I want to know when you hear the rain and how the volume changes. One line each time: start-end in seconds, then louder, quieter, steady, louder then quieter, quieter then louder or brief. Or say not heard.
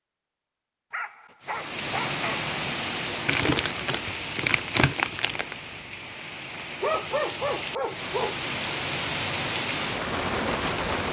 1.4-11.0 quieter then louder.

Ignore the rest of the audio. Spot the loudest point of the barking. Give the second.
7 s.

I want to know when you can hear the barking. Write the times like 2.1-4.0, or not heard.
0.9-2.5, 6.5-8.4.